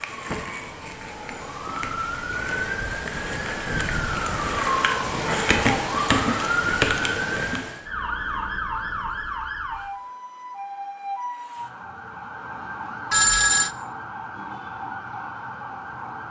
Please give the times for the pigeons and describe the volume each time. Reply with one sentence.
You can't hear the pigeons here.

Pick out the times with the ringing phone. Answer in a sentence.
The ringing phone can be heard from 13.1 to 13.7 s.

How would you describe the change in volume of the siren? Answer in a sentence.
The volume of the siren goes up, then down.